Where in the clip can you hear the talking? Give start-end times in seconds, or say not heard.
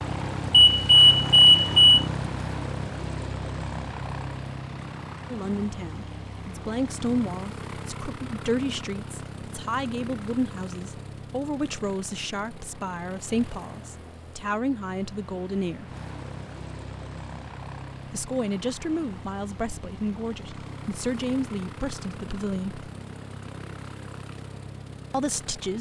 5.3-15.8, 18.1-22.9, 25.1-25.7.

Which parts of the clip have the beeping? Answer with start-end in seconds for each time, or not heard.
0.5-2.0.